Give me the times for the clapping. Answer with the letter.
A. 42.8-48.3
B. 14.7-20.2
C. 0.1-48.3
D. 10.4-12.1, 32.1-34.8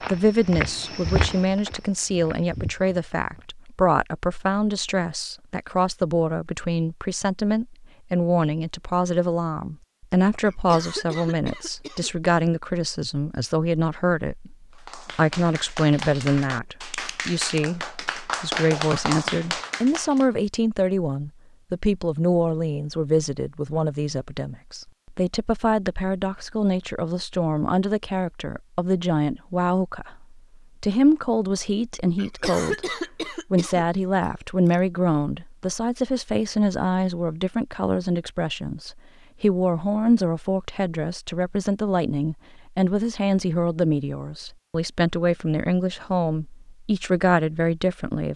B.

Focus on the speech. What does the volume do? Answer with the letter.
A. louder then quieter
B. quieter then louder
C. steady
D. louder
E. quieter
C.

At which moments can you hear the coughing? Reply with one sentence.
The coughing can be heard from 10.4 to 12.1 s and from 32.1 to 34.8 s.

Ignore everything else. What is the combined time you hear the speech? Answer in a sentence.
You can hear the speech for 48 seconds altogether.